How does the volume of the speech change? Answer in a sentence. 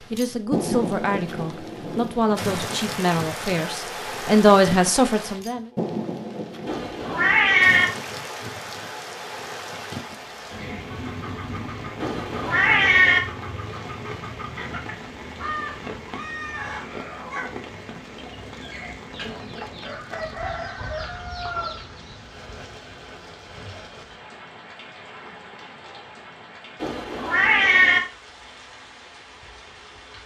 The volume of the speech goes up.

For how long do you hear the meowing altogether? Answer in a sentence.
The meowing can be heard for 4 seconds in total.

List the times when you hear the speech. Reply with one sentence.
You can hear the speech from 0.1 to 5.7 s.